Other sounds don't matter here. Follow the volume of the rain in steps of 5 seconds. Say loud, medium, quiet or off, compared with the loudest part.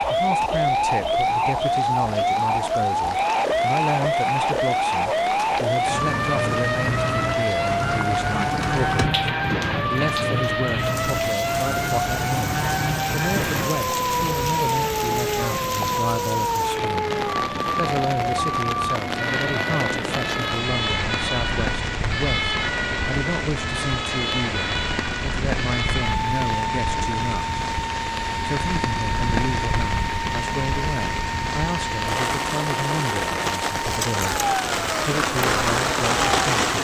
quiet, medium, medium, medium, medium, medium, medium, loud.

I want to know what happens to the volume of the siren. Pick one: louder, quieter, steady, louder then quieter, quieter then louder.
quieter.